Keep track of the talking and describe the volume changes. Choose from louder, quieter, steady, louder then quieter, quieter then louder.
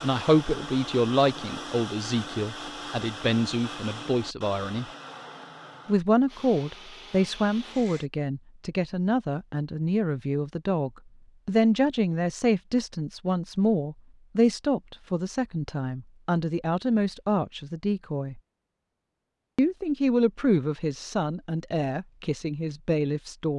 steady.